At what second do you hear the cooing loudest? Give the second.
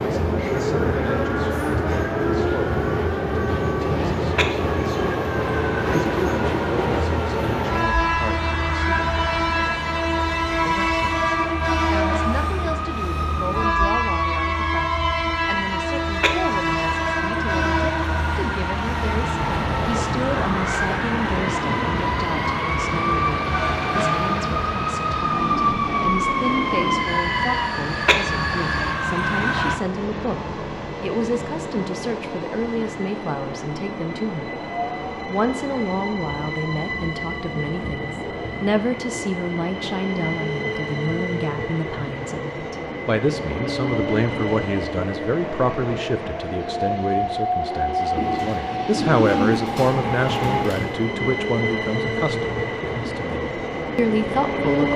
49 s.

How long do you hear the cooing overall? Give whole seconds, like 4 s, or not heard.
3 s.